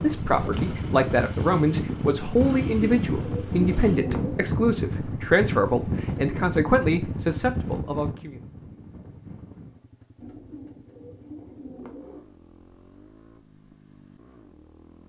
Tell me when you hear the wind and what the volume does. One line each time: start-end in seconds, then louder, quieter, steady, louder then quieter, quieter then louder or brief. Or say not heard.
0.0-9.8 quieter.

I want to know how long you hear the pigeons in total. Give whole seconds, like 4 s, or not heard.
4 s.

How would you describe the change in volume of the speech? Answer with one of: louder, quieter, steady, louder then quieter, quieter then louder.
steady.